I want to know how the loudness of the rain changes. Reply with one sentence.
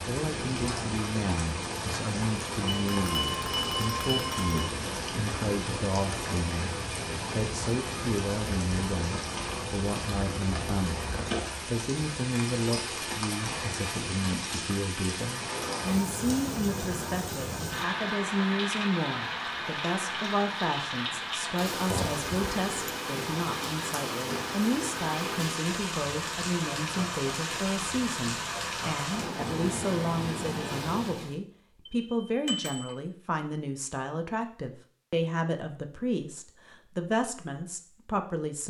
The volume of the rain stays about the same.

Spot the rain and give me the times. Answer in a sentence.
The rain can be heard from 0.0 to 31.4 s.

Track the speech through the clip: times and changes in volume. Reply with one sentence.
You can hear the speech from 0.1 to 38.6 s, at a steady volume.